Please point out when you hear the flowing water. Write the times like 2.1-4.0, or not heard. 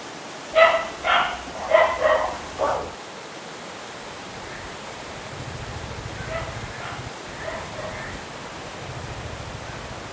0.0-10.0.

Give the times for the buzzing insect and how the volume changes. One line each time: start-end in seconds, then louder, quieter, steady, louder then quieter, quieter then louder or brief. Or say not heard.
not heard.